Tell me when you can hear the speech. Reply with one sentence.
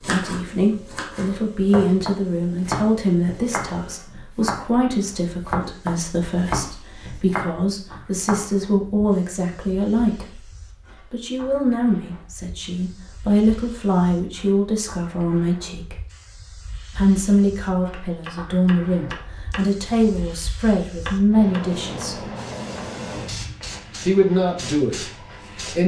The speech can be heard from 0.0 to 10.4 s, from 11.1 to 15.9 s, from 16.9 to 22.2 s and from 24.1 to 25.8 s.